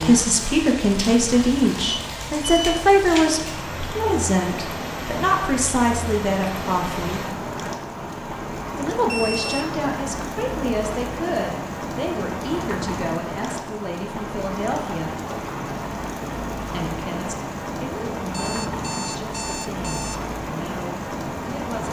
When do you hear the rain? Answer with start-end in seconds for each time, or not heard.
0.0-21.8.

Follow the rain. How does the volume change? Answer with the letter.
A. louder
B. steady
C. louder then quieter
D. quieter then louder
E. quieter
B.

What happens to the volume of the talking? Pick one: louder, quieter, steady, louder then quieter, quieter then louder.
quieter.